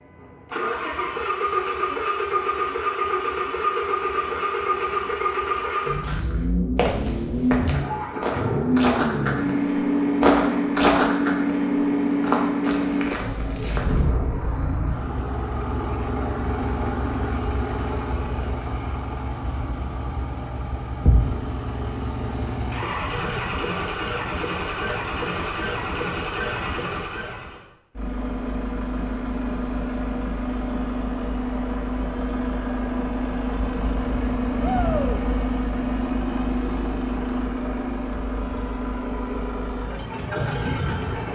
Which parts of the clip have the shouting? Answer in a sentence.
The shouting can be heard from 34.6 to 35.2 s.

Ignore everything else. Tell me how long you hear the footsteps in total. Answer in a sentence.
You can hear the footsteps for 7 seconds altogether.